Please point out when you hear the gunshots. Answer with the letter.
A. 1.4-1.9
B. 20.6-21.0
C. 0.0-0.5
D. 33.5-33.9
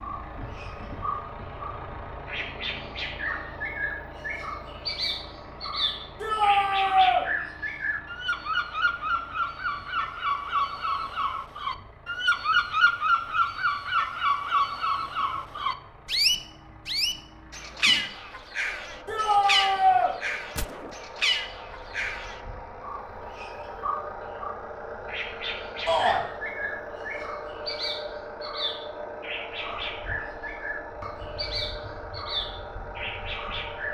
B.